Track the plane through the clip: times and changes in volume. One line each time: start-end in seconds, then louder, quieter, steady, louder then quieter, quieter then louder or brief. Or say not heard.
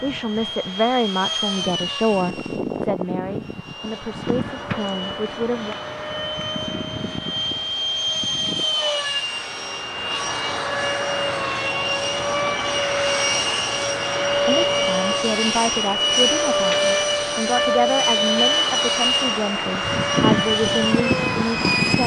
0.0-22.0 louder.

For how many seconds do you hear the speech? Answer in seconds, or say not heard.
13 s.